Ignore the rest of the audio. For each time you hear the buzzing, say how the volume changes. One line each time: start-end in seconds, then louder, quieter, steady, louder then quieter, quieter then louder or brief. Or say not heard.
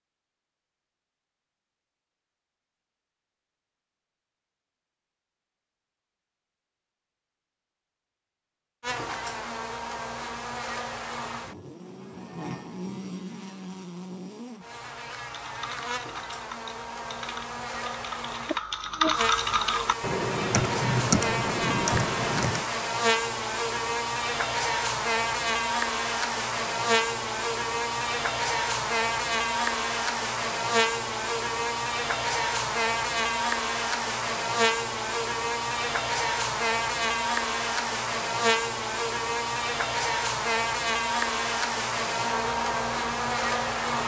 8.8-44.0 louder.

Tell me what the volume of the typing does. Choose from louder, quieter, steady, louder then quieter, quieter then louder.
louder.